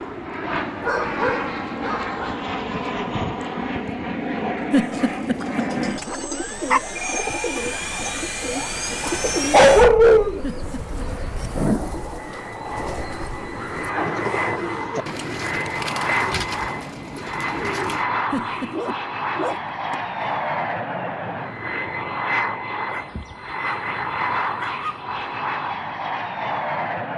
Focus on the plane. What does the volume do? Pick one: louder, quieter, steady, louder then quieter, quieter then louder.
steady.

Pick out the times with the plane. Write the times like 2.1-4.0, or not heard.
0.0-27.1.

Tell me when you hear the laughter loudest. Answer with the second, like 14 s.
5 s.